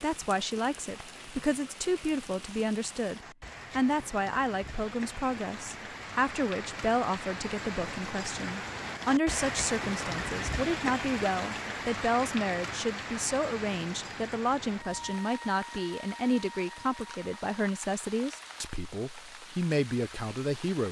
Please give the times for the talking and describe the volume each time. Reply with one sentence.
You can hear the talking from 0.0 to 20.8 s, at a steady volume.